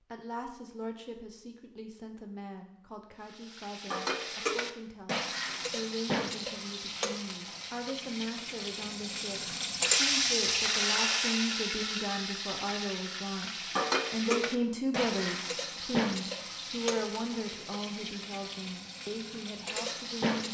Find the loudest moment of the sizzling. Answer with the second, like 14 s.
10 s.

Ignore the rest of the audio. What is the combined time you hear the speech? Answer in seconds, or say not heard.
20 s.